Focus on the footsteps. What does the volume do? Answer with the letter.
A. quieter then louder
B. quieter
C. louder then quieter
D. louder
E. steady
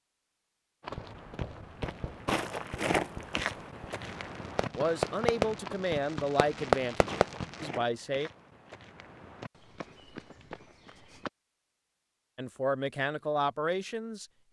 B.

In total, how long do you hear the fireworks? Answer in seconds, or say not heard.
7 s.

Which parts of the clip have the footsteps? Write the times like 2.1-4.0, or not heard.
0.8-11.3.